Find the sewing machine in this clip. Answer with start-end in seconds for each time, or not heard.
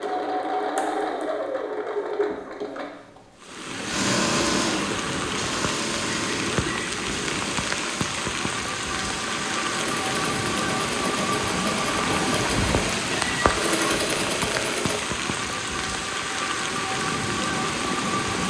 0.0-15.0.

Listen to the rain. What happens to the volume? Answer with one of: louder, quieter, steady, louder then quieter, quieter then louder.
steady.